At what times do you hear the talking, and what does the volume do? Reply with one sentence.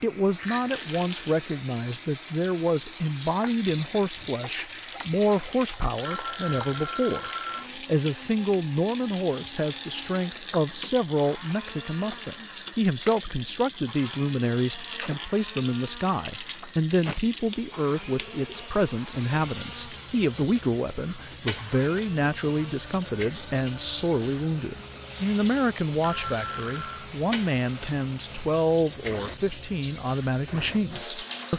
The talking can be heard from 0.0 to 31.5 s, at a steady volume.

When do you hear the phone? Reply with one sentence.
You can hear the phone from 6.0 to 7.7 s and from 26.0 to 27.1 s.